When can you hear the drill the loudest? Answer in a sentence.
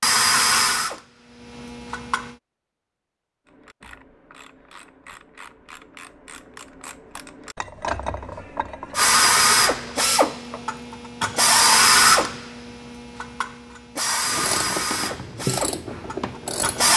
The loudest moment of the drill is at 12 seconds.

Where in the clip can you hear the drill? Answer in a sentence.
You can hear the drill from 0.0 to 2.4 s and from 8.9 to 16.9 s.